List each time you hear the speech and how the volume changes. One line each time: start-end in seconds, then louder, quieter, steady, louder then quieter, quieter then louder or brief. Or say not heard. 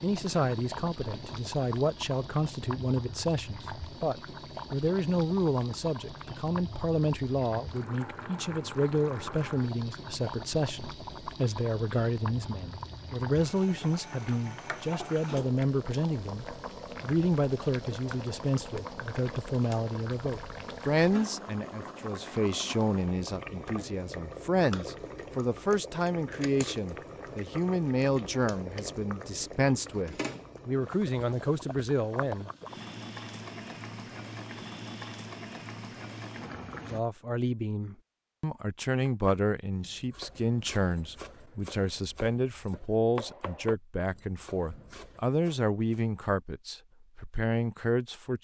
0.0-32.5 steady
36.9-48.3 steady.